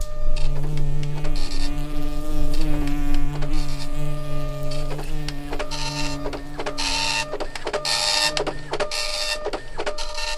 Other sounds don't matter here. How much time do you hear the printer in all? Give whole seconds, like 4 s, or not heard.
10 s.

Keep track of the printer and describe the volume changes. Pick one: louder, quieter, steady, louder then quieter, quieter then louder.
louder.